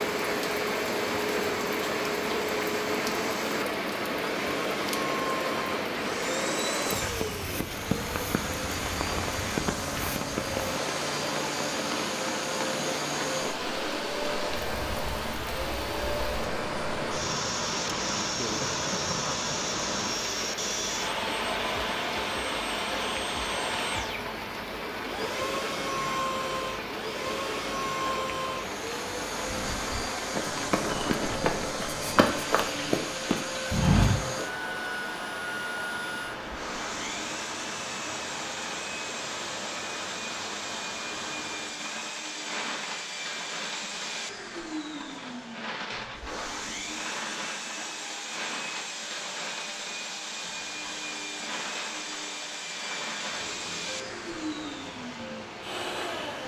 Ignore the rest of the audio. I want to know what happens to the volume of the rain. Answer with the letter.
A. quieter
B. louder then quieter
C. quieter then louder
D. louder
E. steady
A.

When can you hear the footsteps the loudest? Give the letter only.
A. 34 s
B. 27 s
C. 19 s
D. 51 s
A.